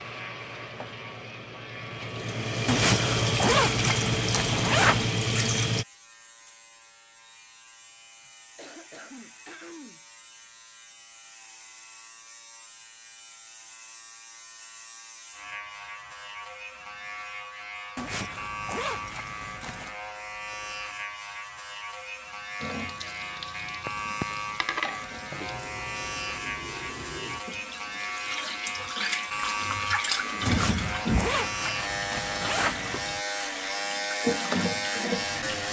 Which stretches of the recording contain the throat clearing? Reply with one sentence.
You can hear the throat clearing from 8.1 to 10.0 s.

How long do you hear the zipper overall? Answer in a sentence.
The zipper can be heard for 7 seconds in total.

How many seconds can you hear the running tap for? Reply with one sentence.
You can hear the running tap for 19 seconds altogether.